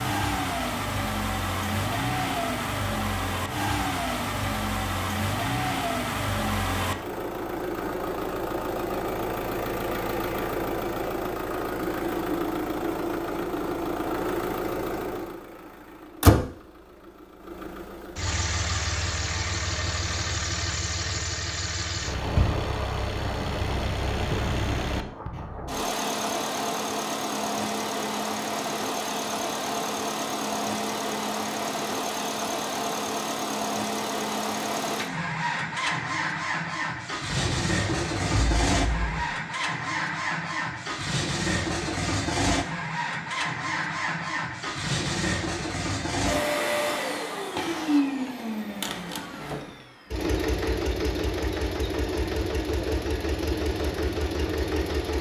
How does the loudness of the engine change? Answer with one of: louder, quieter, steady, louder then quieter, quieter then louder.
steady.